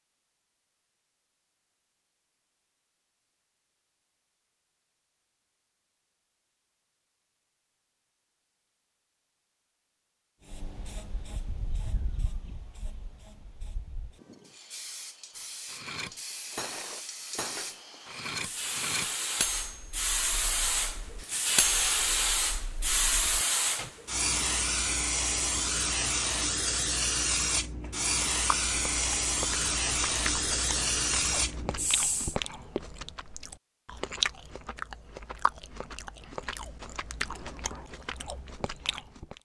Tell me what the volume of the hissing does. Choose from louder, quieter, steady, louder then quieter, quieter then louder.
louder.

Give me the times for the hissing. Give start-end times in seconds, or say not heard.
10.4-32.4.